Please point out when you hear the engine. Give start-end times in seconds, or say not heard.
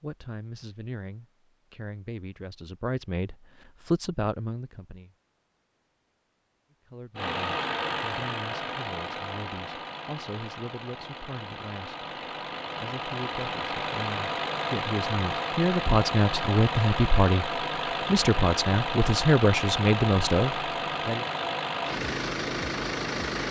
7.2-23.4.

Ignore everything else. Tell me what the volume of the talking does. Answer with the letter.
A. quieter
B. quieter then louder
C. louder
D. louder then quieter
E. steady
B.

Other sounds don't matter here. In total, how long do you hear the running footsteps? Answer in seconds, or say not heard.
not heard.